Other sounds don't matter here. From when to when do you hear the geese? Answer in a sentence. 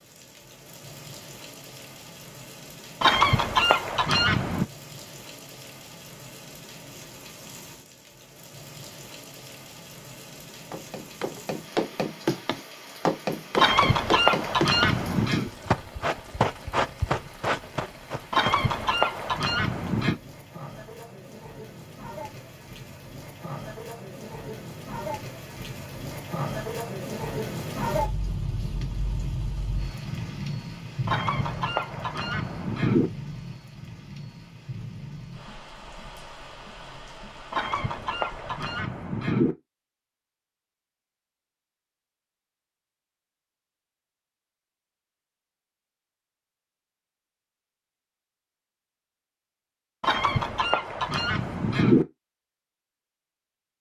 The geese can be heard from 3.0 to 4.7 s, from 13.6 to 15.5 s, from 18.3 to 20.1 s, from 31.1 to 33.1 s, from 37.5 to 39.5 s and from 50.0 to 52.0 s.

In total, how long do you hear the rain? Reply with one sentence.
You can hear the rain for 39 seconds altogether.